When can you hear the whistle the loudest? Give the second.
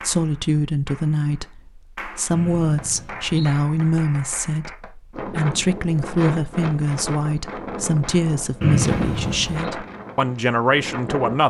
9 s.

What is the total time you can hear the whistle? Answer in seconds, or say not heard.
2 s.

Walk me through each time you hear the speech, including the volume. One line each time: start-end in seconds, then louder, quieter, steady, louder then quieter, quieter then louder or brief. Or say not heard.
0.0-11.4 steady.